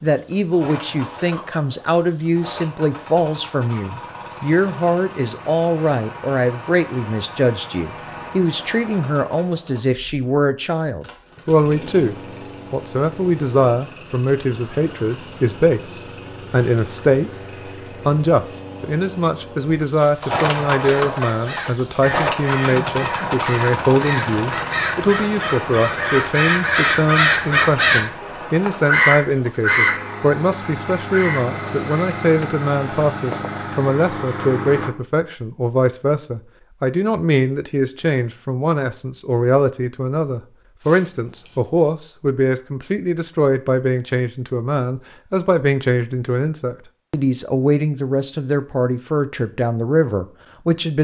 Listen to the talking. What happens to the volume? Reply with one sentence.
The loudness of the talking stays about the same.